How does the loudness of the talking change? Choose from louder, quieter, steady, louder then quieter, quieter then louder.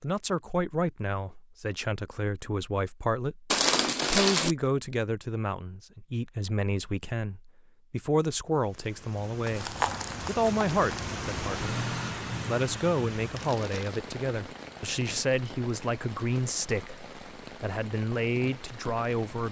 steady.